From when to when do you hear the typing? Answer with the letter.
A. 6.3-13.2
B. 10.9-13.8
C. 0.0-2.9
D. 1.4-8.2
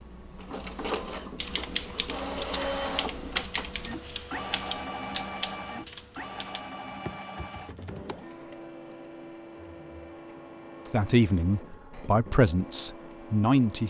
D.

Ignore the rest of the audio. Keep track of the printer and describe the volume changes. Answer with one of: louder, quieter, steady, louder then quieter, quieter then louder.
quieter.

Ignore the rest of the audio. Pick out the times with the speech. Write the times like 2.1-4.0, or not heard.
10.9-13.8.